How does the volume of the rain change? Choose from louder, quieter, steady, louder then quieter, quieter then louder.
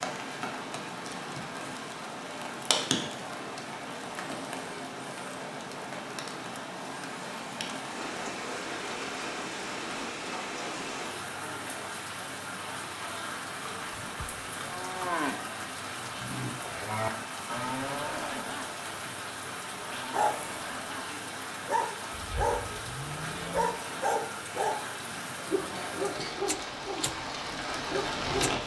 steady.